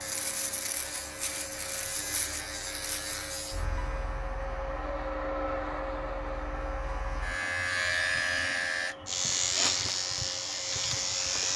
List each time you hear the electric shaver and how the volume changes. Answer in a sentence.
You can hear the electric shaver from 0.0 to 11.5 s, getting quieter then louder.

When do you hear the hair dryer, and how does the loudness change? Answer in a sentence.
The hair dryer can be heard from 0.0 to 11.5 s, getting louder then quieter.